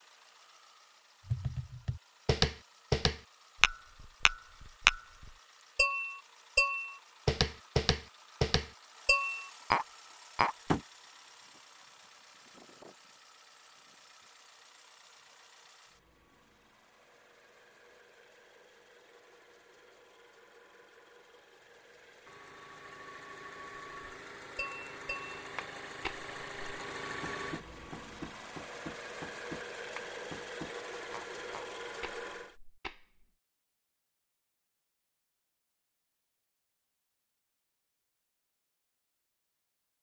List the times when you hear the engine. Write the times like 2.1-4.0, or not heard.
0.0-32.5.